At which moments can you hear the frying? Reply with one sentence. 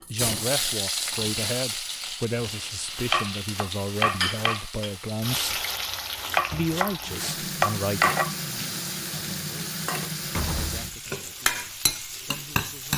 You can hear the frying from 0.0 to 12.9 s.